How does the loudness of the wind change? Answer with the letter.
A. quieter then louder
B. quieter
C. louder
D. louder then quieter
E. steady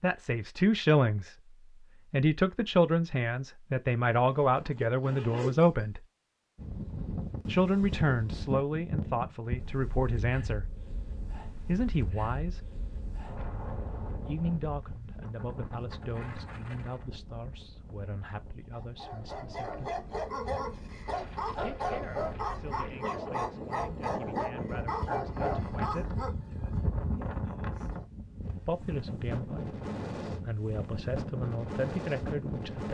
A.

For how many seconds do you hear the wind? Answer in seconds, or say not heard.
26 s.